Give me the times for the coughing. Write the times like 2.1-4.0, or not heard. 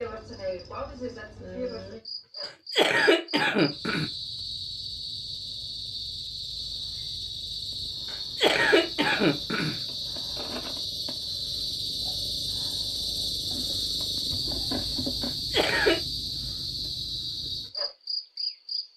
2.5-4.1, 8.1-9.8, 15.2-16.0.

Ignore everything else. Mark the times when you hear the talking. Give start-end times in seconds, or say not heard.
not heard.